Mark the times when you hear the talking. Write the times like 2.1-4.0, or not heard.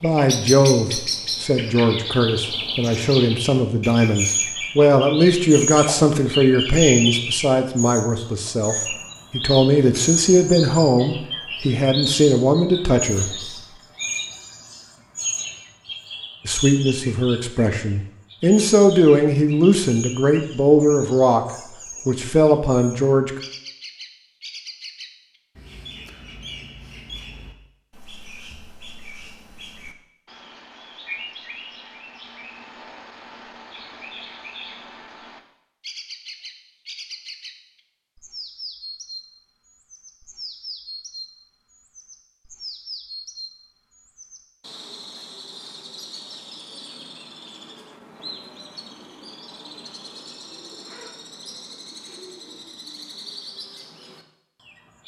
0.0-13.3, 16.4-21.4, 22.1-23.3.